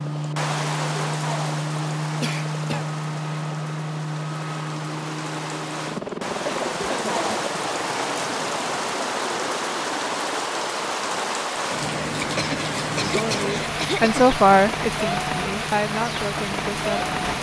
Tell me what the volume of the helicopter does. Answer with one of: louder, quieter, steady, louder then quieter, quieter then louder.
quieter.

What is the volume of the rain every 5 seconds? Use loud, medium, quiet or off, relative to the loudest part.
medium, loud, loud, loud.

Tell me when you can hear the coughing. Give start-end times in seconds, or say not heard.
2.2-2.9, 6.5-7.5, 12.2-14.2.